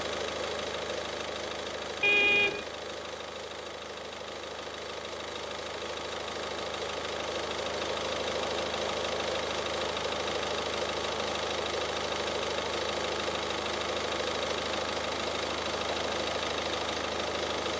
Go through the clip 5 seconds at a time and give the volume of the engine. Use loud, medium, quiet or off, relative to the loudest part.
medium, loud, loud, loud.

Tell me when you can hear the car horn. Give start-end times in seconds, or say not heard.
2.0-2.6.